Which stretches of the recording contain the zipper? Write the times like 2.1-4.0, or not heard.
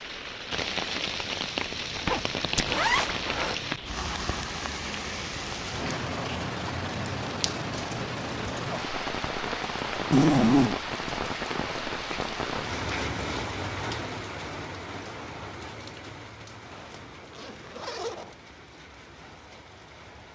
1.9-3.5, 10.1-10.8, 16.7-18.4.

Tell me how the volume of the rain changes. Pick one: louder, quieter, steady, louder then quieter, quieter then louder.
quieter.